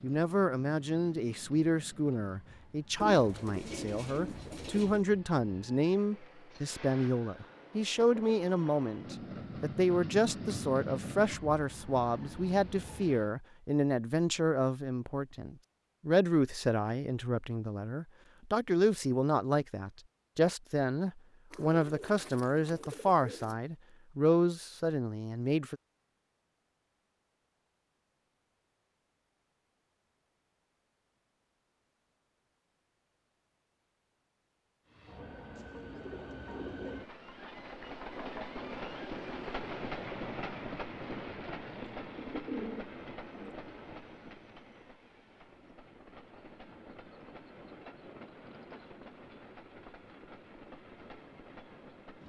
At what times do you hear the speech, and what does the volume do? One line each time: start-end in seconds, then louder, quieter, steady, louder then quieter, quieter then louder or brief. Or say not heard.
0.0-25.8 steady.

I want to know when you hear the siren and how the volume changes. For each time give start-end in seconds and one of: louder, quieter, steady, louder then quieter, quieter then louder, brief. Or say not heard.
not heard.